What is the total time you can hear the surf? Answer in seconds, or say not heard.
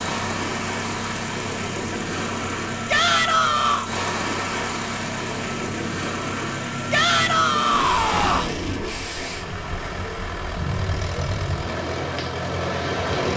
13 s.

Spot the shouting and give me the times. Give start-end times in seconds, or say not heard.
2.9-3.9, 6.9-8.6.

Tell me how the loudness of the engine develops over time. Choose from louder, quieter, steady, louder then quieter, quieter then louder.
steady.